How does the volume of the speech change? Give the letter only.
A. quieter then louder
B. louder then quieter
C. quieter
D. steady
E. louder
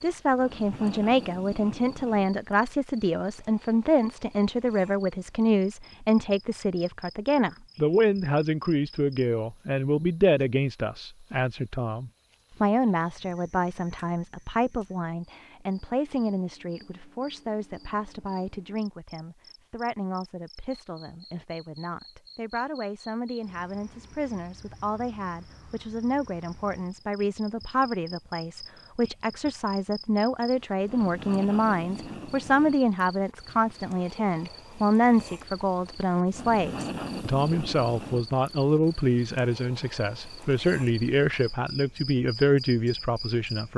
A.